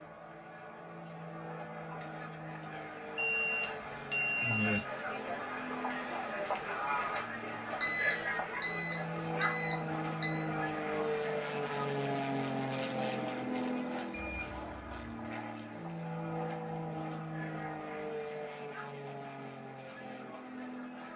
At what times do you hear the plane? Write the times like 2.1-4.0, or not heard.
0.0-21.1.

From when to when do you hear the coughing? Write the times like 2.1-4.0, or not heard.
not heard.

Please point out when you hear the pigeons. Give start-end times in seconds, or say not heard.
not heard.